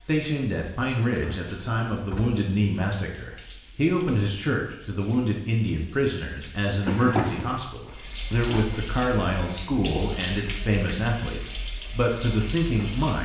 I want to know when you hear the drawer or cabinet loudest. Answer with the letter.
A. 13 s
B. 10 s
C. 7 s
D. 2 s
C.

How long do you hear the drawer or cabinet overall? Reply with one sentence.
You can hear the drawer or cabinet for 3 seconds altogether.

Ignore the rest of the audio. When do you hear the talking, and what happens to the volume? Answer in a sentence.
The talking can be heard from 0.1 to 13.2 s, at a steady volume.